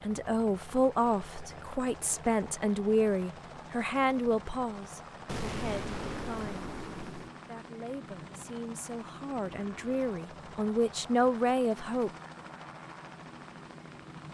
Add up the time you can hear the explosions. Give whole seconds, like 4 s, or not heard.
2 s.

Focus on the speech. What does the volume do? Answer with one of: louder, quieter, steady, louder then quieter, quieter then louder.
quieter then louder.